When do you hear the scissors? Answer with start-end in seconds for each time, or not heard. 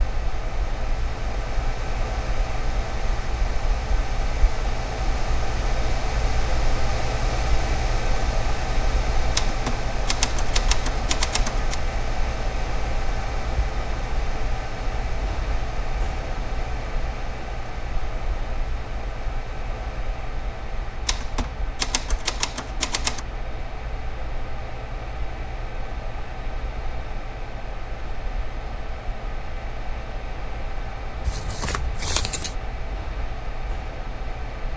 31.2-32.5.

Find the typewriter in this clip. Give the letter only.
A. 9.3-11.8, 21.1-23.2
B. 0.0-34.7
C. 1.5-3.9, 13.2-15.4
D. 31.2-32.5
A.